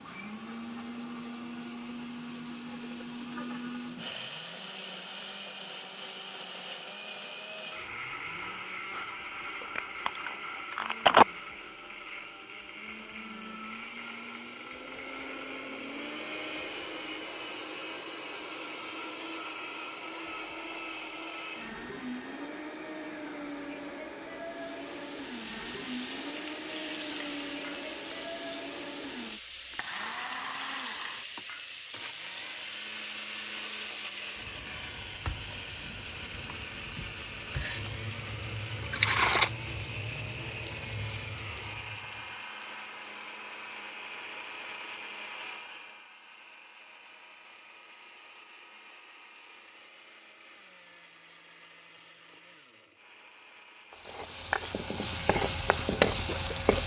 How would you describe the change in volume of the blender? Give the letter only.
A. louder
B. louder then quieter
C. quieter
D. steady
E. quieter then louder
C.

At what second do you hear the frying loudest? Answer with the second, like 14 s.
56 s.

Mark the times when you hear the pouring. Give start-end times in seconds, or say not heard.
38.5-39.5.